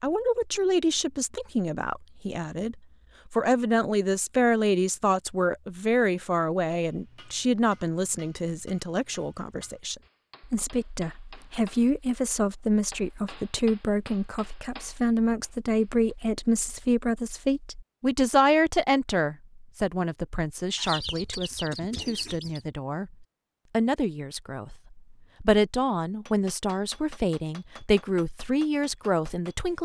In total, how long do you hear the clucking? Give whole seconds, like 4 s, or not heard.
2 s.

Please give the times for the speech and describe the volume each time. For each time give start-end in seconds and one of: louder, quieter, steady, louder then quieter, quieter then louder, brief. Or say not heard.
0.0-29.7 steady.